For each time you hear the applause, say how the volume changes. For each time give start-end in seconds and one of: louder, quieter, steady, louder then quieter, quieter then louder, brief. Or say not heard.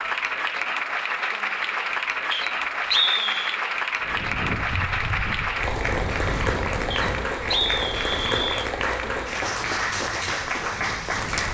0.0-11.4 steady.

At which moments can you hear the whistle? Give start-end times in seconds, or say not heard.
2.3-3.5, 6.9-8.7.